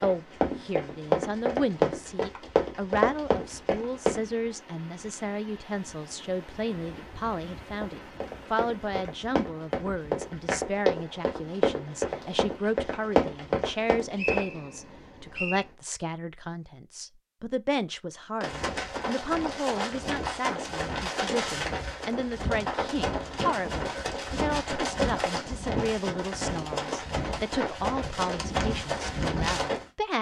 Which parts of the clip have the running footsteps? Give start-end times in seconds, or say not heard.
0.0-4.2, 7.8-14.4, 18.4-29.9.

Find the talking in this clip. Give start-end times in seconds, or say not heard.
0.0-30.1.